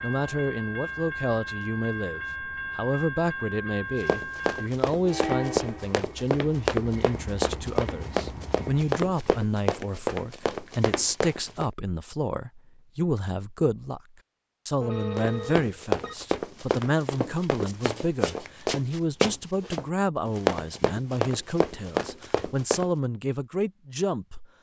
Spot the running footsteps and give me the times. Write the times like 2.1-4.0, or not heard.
4.0-11.7, 15.2-22.9.